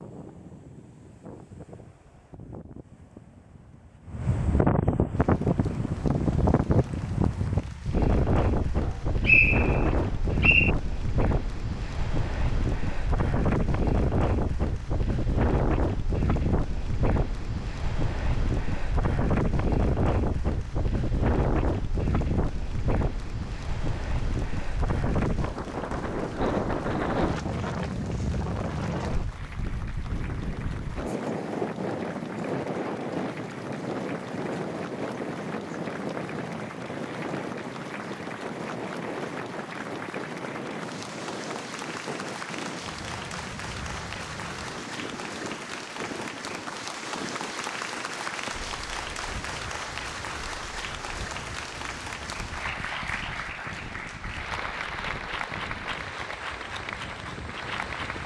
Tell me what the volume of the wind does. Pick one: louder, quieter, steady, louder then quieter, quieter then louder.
quieter.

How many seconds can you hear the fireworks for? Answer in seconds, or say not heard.
not heard.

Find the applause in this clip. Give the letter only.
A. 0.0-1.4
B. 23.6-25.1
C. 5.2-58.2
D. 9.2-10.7
C.